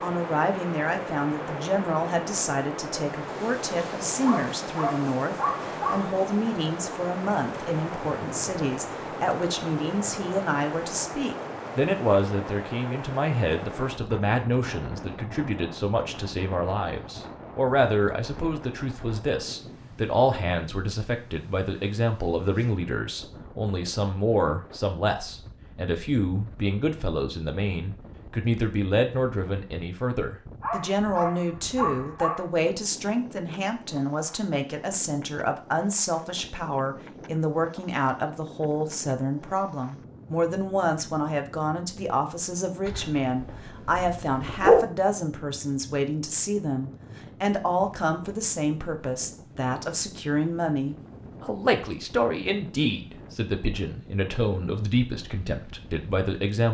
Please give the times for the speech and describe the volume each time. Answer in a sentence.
The speech can be heard from 0.0 to 56.7 s, at a steady volume.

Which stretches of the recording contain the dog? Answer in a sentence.
The dog can be heard from 4.2 to 6.1 s, from 30.6 to 32.5 s and from 42.9 to 44.8 s.